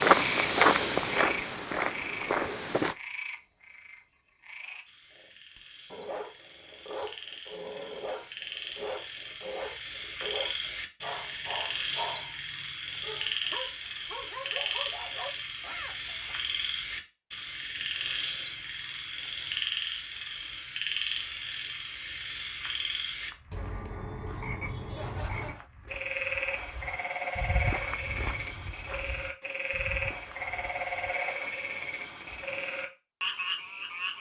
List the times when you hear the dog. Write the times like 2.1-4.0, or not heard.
5.2-16.4.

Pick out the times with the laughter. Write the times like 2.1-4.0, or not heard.
24.8-25.7.